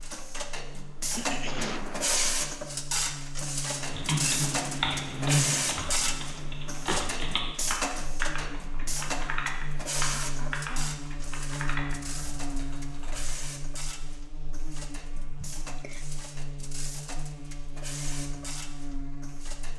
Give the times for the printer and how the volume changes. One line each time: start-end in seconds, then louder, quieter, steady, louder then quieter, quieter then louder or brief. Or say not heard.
0.0-19.7 quieter.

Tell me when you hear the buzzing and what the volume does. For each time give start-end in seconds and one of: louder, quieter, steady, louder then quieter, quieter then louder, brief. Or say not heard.
0.0-19.7 louder then quieter.